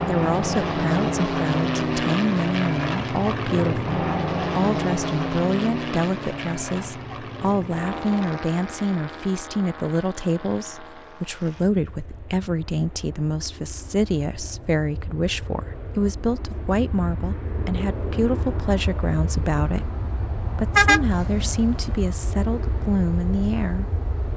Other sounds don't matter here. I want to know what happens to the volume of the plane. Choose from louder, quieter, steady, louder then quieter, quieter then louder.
quieter then louder.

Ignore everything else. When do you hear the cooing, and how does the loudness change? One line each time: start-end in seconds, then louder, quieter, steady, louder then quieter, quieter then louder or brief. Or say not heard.
not heard.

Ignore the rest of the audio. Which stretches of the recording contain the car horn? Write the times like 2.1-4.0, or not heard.
20.8-22.1.